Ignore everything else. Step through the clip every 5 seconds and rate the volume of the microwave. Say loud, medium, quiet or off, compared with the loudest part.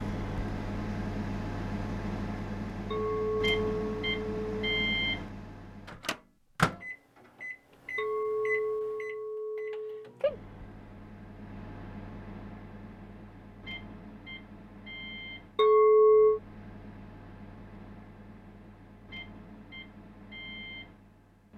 loud, loud, medium, quiet, quiet.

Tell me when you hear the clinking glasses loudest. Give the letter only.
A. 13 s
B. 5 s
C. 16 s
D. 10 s
C.